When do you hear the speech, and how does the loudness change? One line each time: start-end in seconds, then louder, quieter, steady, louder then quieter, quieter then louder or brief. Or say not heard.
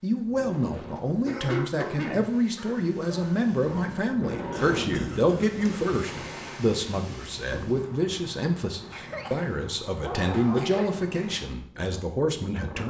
0.0-12.8 steady.